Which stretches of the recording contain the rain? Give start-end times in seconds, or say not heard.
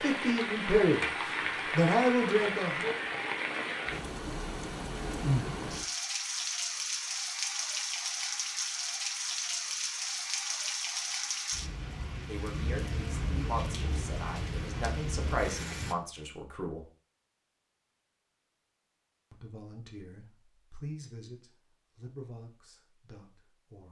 0.0-15.9.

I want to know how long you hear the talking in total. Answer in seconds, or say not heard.
12 s.